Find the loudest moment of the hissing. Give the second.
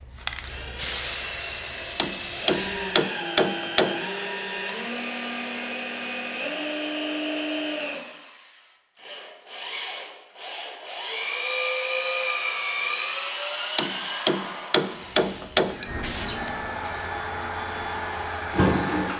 1 s.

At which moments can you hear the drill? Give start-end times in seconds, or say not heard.
0.4-19.1.